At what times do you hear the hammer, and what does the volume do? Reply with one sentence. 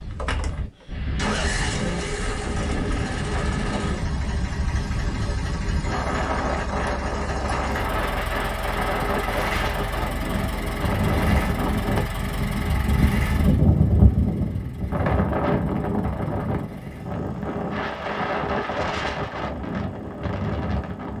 The hammer can't be heard in this clip.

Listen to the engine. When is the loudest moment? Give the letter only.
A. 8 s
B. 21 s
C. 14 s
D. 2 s
D.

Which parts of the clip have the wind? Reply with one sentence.
The wind can be heard from 0.0 to 21.1 s.